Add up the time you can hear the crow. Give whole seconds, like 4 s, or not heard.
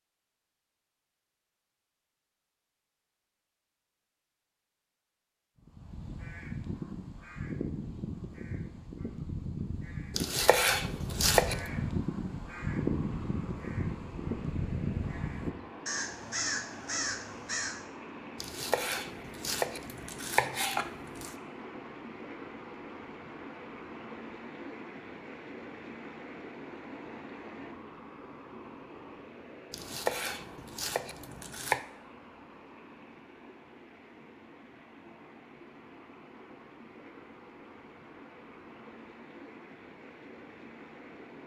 12 s.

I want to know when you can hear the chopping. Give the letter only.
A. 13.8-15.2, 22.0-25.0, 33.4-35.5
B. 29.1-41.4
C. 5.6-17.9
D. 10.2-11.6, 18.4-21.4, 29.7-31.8
D.